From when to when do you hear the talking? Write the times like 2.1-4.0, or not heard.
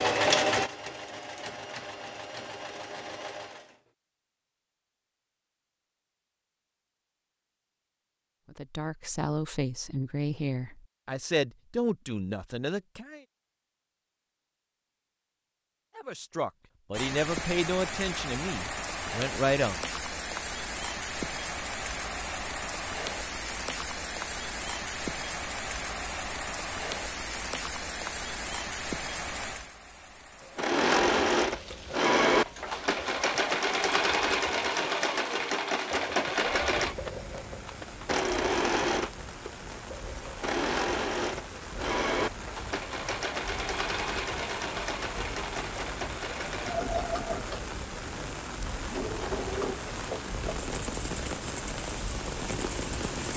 8.5-13.2, 15.9-19.9.